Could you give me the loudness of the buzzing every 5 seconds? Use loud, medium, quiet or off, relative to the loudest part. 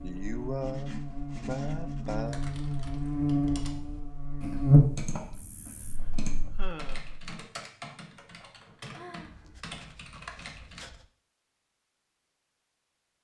loud, quiet, off.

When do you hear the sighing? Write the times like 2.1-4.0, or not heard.
0.0-2.4, 5.2-7.0, 8.9-9.5.